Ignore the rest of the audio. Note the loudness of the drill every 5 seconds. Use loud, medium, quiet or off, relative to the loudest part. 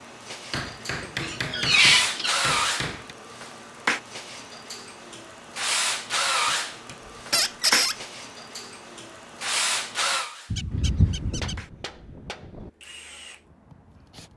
loud, loud, medium.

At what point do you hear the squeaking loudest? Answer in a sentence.
The loudest moment of the squeaking is at 2 seconds.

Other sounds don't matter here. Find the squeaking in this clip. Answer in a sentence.
You can hear the squeaking from 1.2 to 2.4 s, from 7.3 to 8.0 s and from 10.5 to 11.6 s.